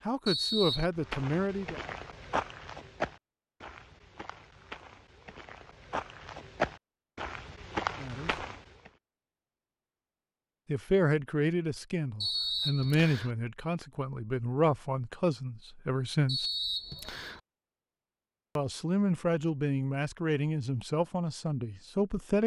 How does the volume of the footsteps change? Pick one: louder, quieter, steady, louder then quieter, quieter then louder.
quieter then louder.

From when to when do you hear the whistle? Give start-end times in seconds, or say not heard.
0.2-0.8, 12.2-13.3, 16.2-17.4.